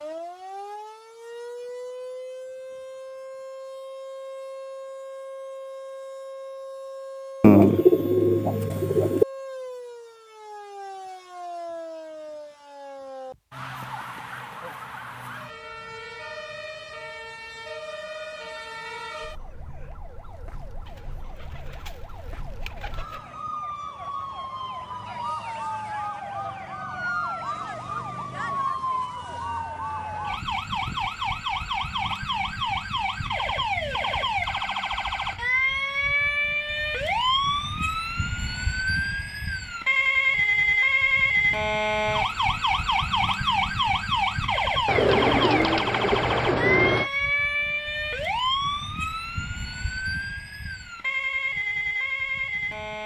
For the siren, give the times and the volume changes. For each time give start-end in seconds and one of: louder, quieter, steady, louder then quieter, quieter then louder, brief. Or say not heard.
0.0-53.0 louder.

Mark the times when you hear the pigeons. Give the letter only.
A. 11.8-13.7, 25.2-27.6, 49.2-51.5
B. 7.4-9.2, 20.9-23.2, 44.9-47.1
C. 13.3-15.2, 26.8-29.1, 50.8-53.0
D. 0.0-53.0
B.